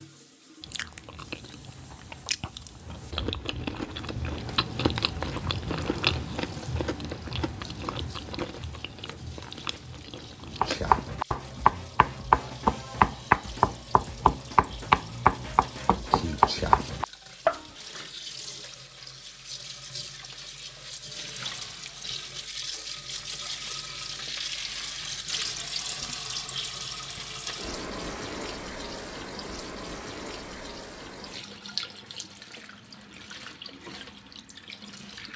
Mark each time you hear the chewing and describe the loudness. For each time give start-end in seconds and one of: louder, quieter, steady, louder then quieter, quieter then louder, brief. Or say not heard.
0.6-10.8 louder then quieter.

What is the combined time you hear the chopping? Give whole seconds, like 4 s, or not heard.
7 s.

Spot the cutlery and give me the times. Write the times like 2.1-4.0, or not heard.
not heard.